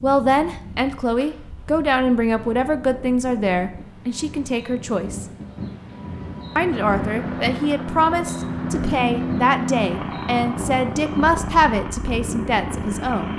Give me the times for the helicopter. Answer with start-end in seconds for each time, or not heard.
6.5-13.3.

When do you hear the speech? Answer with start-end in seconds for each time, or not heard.
0.0-5.2, 6.5-13.3.